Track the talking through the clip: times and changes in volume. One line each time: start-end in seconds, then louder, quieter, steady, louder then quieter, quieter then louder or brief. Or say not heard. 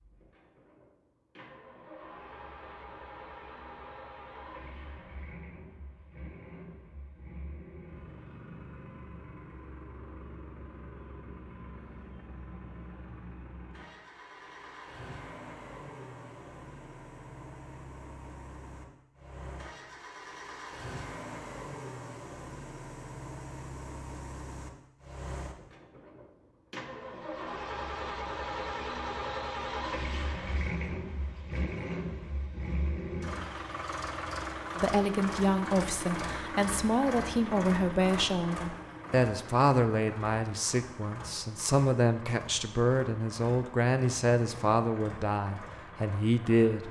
34.8-46.8 steady.